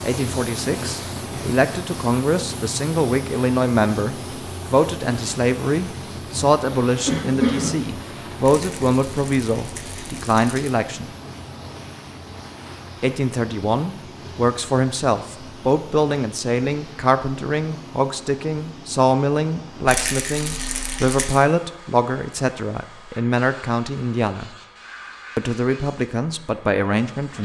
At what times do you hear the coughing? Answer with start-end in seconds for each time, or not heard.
7.0-8.4.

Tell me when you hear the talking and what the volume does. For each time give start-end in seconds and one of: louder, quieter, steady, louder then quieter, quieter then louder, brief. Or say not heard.
0.0-11.1 steady
13.0-24.5 steady
25.4-27.3 brief.